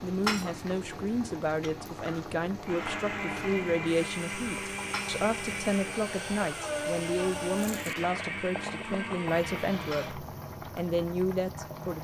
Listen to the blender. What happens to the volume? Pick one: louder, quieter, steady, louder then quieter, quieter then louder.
steady.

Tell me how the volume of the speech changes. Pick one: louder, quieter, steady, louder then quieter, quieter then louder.
steady.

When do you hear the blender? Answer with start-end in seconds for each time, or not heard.
2.6-10.2.